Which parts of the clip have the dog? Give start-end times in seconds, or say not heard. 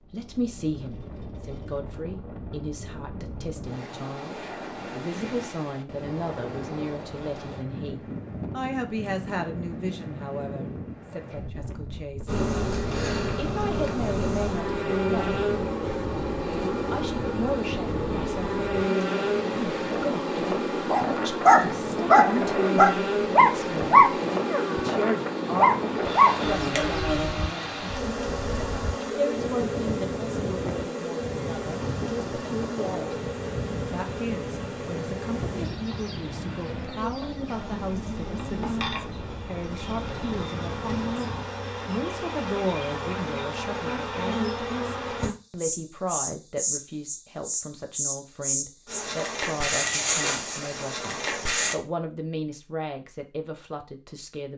20.9-27.4.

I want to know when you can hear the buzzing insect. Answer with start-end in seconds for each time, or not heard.
12.2-51.8.